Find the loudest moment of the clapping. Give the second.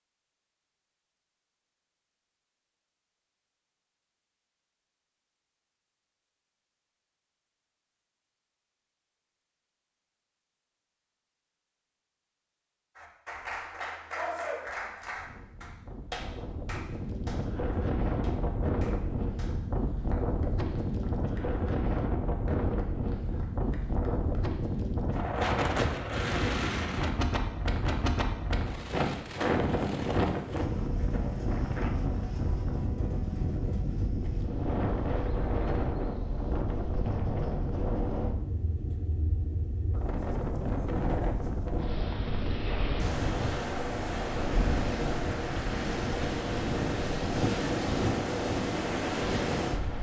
14 s.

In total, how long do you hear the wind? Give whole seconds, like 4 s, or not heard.
35 s.